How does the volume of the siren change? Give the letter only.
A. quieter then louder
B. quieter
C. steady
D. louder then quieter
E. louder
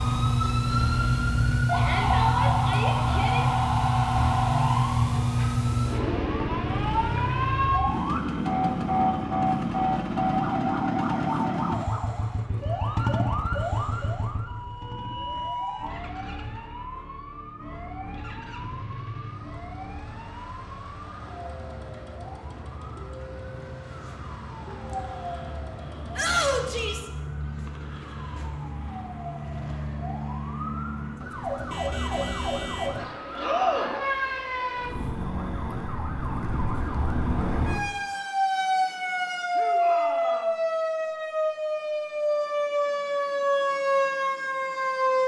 A.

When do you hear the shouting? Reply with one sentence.
You can hear the shouting from 1.8 to 3.5 s, from 26.1 to 27.1 s and from 39.5 to 40.6 s.